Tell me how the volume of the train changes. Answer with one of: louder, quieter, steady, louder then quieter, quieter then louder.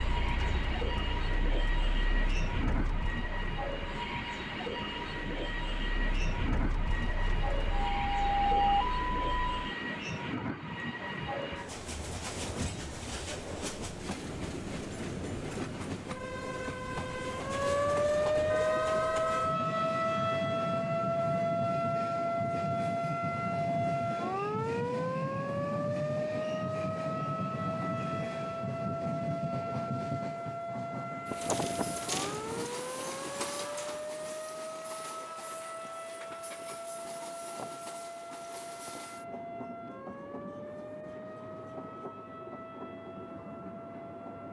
quieter.